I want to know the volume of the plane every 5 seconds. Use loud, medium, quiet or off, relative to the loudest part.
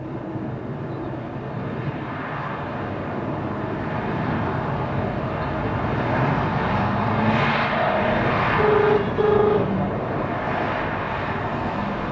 medium, loud, loud.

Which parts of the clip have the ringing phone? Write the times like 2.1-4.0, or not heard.
8.5-9.7.